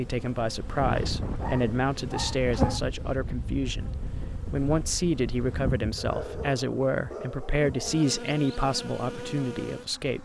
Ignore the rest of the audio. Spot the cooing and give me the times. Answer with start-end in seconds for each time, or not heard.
not heard.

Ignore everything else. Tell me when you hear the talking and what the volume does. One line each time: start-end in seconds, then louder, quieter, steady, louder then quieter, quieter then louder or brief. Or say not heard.
0.0-10.1 steady.